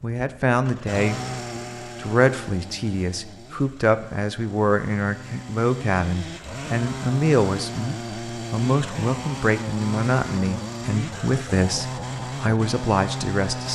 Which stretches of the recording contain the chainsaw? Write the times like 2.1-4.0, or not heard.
0.0-13.6.